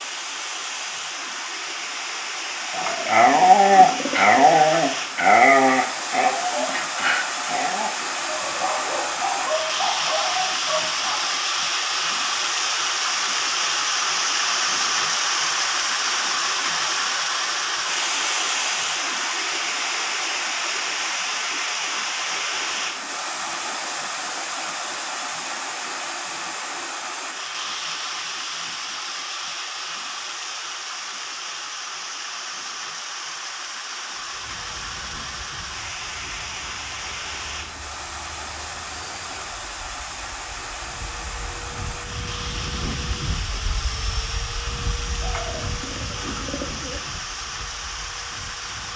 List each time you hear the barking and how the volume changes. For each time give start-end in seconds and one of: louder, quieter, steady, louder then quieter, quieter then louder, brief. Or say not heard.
2.6-11.3 quieter.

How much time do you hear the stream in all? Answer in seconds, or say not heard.
49 s.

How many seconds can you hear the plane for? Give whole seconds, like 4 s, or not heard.
15 s.